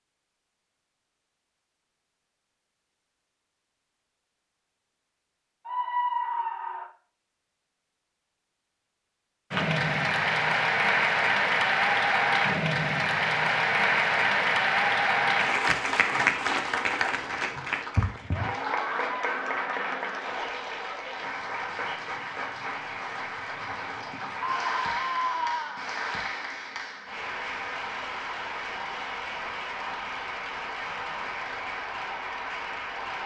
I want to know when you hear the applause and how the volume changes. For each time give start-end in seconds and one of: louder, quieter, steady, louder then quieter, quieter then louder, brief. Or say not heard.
9.5-33.2 quieter.